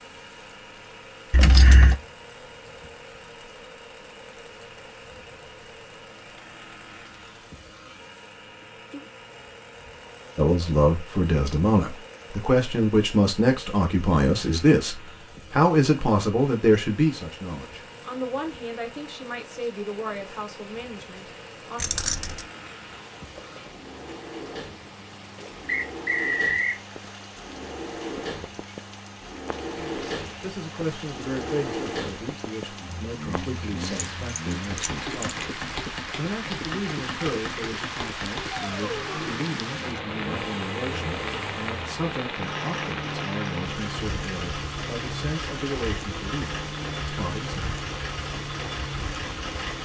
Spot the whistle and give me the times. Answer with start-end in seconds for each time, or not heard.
25.6-26.8.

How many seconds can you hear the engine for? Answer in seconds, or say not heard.
50 s.